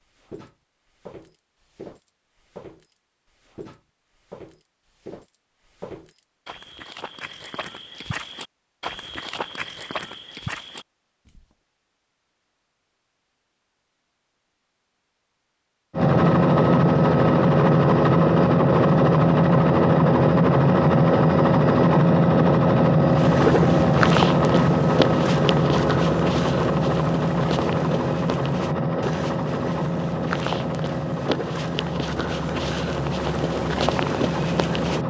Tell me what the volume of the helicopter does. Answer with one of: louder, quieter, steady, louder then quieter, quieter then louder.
quieter.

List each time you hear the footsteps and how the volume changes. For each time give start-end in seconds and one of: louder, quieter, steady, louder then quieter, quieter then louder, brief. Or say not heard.
0.1-11.4 louder
23.1-35.0 quieter then louder.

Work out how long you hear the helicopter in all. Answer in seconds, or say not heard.
19 s.